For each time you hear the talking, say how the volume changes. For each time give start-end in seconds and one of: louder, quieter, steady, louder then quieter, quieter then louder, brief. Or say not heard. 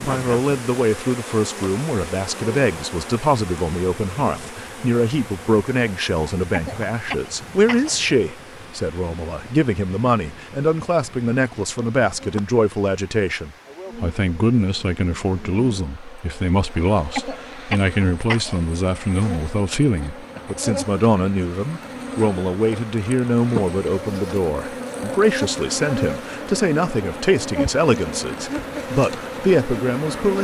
0.0-30.3 steady.